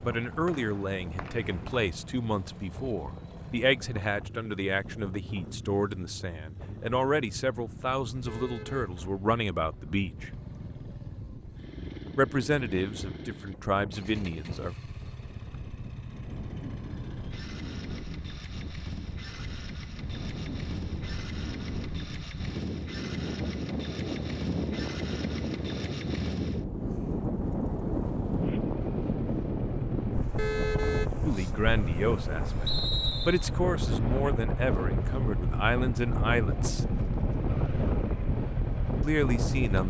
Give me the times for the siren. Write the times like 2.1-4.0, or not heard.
not heard.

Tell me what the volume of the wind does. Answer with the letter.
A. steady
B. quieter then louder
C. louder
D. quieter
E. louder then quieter
C.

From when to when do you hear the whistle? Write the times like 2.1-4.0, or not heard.
0.5-1.9, 32.6-33.5.